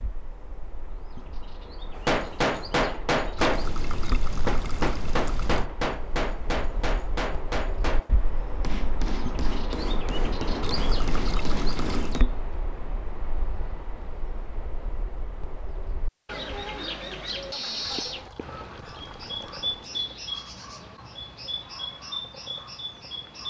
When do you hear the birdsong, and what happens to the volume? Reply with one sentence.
The birdsong can be heard from 0.0 to 23.4 s, getting louder.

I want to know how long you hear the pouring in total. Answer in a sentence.
You can hear the pouring for 6 seconds altogether.